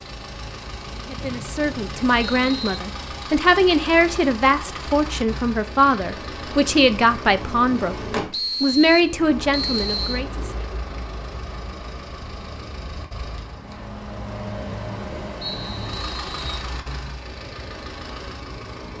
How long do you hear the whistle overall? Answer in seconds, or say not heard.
5 s.